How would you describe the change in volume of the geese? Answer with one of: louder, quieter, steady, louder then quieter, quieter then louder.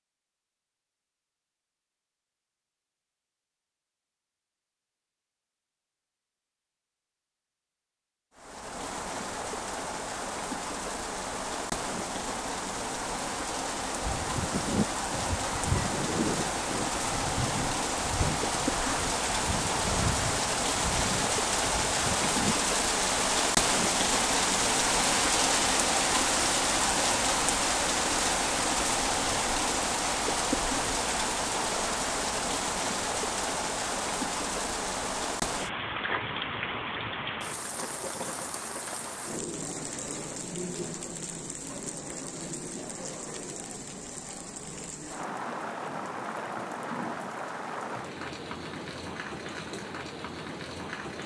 quieter.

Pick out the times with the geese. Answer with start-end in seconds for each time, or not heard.
14.0-22.6.